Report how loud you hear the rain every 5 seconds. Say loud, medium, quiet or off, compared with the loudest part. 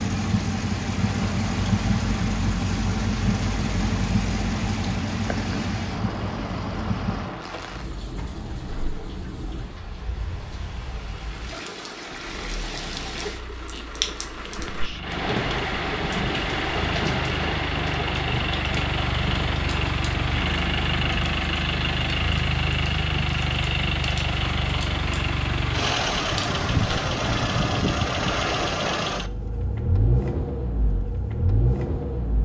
medium, medium, medium, loud, medium, medium, off.